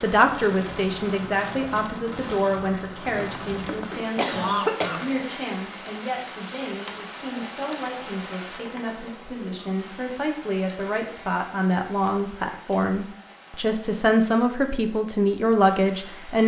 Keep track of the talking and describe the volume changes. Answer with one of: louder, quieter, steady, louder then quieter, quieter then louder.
quieter then louder.